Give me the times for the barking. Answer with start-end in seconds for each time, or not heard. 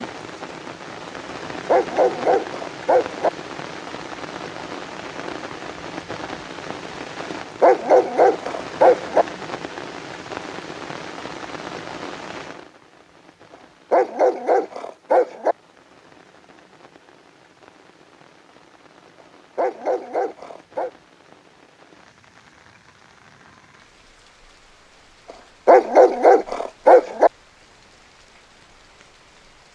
1.6-3.3, 7.6-9.2, 13.9-15.6, 19.6-20.9, 25.6-27.3.